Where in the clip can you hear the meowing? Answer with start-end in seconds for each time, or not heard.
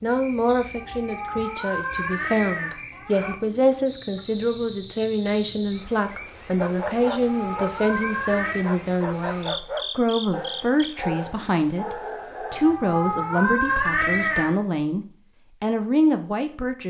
0.8-3.4, 7.0-8.7, 12.5-14.6.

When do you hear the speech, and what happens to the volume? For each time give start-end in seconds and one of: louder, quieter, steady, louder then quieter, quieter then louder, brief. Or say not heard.
0.0-16.8 steady.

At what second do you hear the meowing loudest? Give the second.
14 s.